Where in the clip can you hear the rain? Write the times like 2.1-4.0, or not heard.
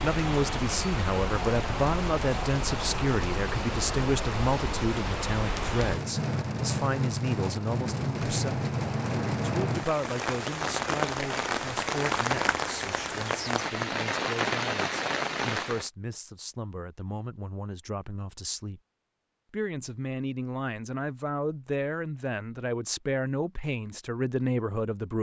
0.0-15.9.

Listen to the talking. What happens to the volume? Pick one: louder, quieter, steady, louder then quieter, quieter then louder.
quieter then louder.